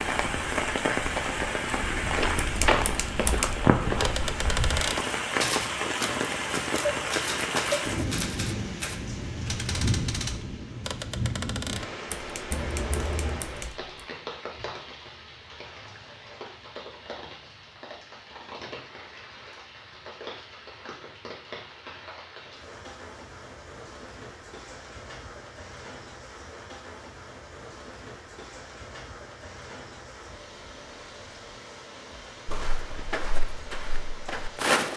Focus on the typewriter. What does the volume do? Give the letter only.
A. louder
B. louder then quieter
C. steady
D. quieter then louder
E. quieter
E.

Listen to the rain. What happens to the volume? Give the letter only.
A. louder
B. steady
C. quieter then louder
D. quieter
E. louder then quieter
D.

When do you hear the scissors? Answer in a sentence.
You can hear the scissors from 12.5 to 13.4 s.